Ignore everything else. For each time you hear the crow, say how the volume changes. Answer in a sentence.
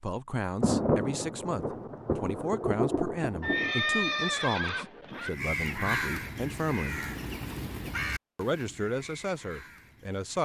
The crow can be heard from 5.2 to 10.4 s, getting quieter.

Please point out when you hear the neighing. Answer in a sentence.
You can hear the neighing from 3.4 to 5.3 s.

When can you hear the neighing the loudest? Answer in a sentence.
The volume of the neighing peaks at 4 seconds.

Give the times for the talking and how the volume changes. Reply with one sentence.
The talking can be heard from 0.0 to 7.0 s, at a steady volume; and briefly from 8.3 to 10.4 s.